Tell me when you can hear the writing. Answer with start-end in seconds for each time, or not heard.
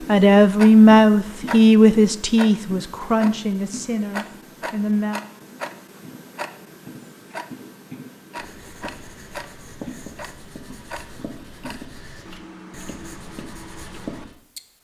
8.3-14.3.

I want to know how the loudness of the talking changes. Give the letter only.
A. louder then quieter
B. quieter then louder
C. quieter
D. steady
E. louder
C.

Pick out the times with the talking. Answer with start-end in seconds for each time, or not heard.
0.1-5.2.